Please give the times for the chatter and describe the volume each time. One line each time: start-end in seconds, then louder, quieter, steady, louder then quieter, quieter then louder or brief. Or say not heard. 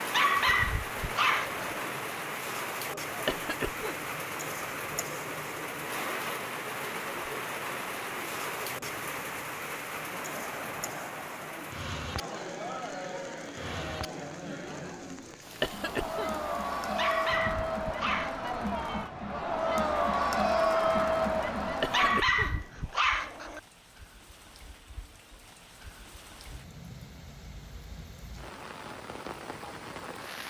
0.1-22.2 louder.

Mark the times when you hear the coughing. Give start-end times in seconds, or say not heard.
3.2-4.1, 15.6-16.4, 21.8-22.6.